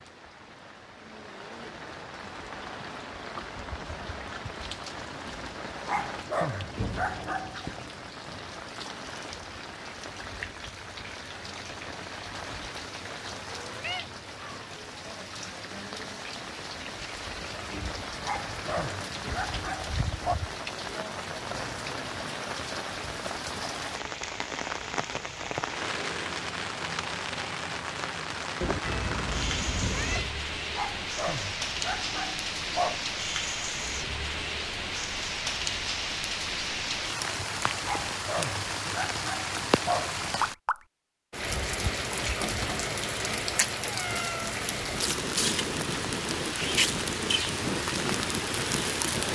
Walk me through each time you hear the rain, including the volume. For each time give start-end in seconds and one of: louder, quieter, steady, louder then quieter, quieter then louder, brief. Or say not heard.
0.0-49.3 louder.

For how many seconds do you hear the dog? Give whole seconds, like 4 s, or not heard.
9 s.